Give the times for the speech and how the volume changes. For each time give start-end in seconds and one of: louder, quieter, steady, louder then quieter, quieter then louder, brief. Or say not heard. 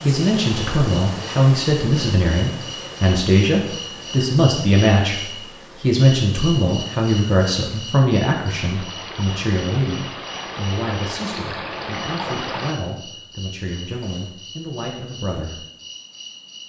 0.0-15.6 quieter.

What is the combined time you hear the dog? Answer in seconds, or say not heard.
not heard.